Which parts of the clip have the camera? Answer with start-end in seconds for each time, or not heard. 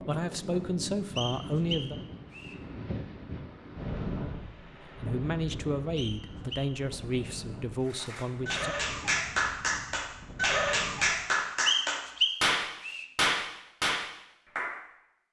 not heard.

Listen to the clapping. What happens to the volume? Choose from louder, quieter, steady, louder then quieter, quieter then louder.
steady.